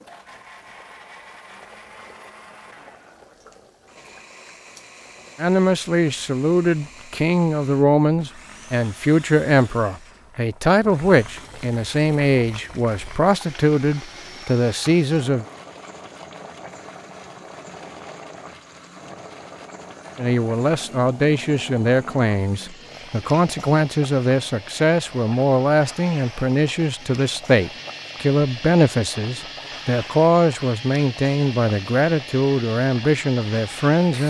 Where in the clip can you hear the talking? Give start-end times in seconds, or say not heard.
5.3-15.4, 20.1-34.2.